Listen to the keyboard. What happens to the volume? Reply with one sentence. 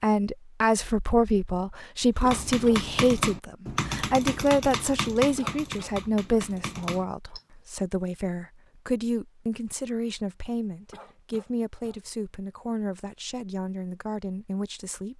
The volume of the keyboard goes down.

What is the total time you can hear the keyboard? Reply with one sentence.
The keyboard can be heard for 5 seconds in total.